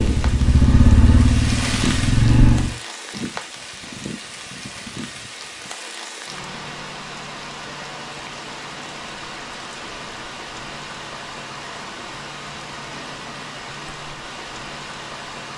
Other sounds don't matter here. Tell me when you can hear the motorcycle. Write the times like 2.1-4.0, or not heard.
0.0-2.8.